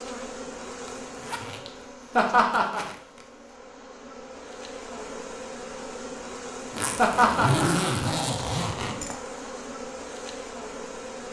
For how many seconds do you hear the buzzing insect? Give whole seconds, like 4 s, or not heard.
11 s.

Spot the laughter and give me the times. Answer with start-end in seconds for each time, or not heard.
2.1-2.9, 7.0-7.7.